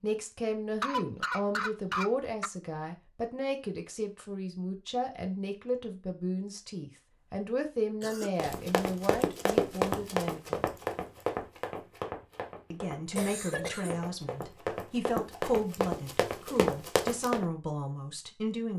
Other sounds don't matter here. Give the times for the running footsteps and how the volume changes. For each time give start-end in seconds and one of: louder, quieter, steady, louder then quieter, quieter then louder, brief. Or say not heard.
8.3-17.4 quieter then louder.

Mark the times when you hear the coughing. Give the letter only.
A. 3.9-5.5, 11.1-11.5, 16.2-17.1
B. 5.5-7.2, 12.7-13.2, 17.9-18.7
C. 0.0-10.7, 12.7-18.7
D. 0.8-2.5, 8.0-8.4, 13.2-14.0
D.